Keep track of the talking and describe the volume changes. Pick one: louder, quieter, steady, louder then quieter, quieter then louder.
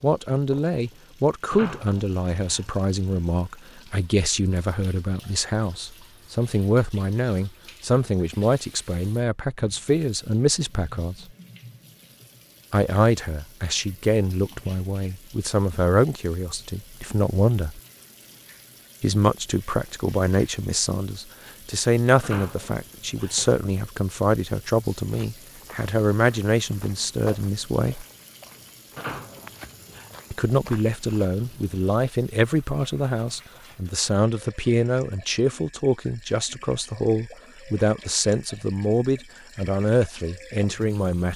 steady.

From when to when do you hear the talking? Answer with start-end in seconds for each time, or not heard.
0.0-11.2, 12.7-17.8, 19.0-28.1, 30.3-41.3.